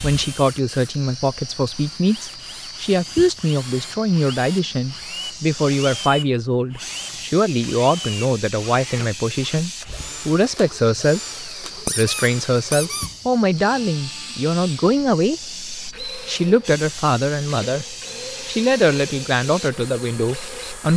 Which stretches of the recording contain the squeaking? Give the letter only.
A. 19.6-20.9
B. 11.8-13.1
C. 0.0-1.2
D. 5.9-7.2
B.